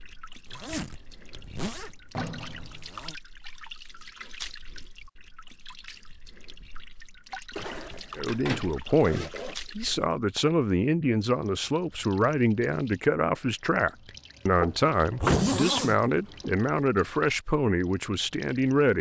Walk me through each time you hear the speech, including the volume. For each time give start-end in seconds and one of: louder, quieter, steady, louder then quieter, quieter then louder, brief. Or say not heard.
8.2-18.9 steady.